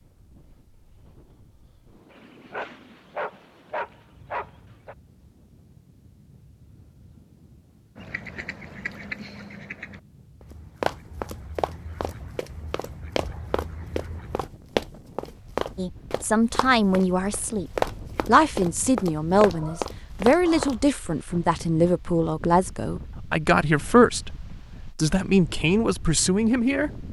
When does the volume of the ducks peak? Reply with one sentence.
The volume of the ducks peaks at 9 seconds.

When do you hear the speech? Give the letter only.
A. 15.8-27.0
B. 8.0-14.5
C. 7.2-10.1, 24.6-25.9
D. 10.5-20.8
A.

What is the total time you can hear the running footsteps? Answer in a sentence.
The running footsteps can be heard for 10 seconds in total.